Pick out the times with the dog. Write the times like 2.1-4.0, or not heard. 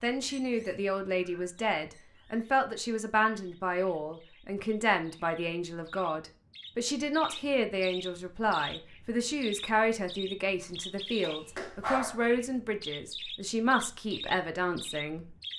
10.6-12.3.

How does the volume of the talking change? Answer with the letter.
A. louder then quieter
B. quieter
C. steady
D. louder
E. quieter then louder
C.